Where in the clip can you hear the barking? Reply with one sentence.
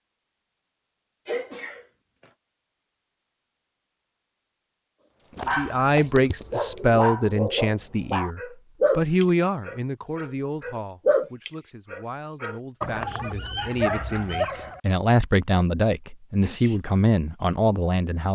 The barking can be heard from 5.3 to 14.8 s.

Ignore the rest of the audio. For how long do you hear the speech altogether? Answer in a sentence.
The speech can be heard for 13 seconds in total.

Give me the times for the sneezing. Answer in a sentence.
You can hear the sneezing from 1.2 to 2.2 s and from 16.4 to 16.8 s.